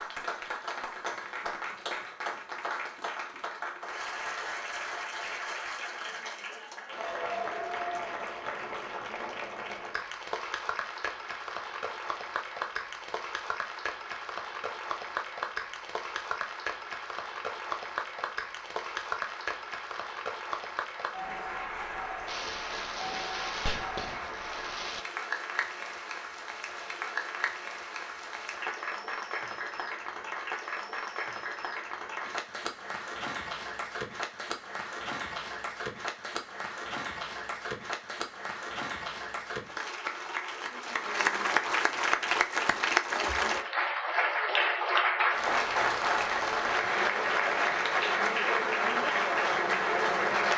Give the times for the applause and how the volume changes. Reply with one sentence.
You can hear the applause from 0.0 to 50.5 s, getting louder.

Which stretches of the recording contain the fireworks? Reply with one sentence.
You can hear the fireworks from 22.2 to 25.1 s.